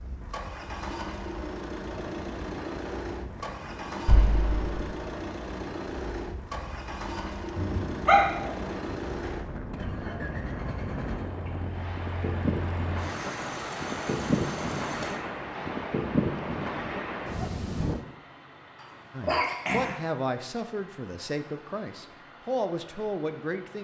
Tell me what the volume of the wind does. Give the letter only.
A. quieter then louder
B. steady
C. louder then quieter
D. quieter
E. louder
E.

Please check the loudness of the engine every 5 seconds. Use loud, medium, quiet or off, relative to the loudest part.
loud, loud, loud, medium, quiet.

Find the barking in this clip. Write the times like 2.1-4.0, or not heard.
7.5-8.6, 18.8-19.9.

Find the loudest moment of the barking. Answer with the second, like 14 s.
8 s.